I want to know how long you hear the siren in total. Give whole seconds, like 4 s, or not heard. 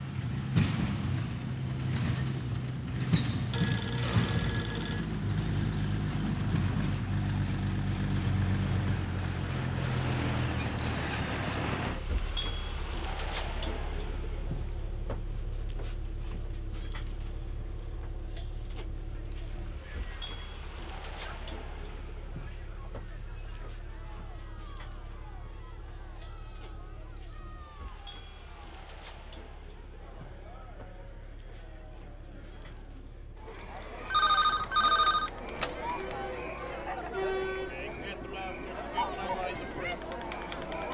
not heard.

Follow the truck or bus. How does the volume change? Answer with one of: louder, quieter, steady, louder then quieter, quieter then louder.
quieter.